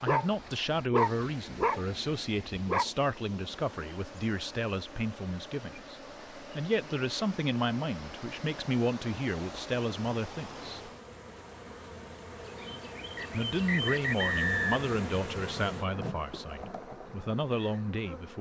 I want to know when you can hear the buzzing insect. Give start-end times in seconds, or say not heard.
3.3-18.3.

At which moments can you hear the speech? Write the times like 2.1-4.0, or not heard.
0.0-10.9, 13.3-18.3.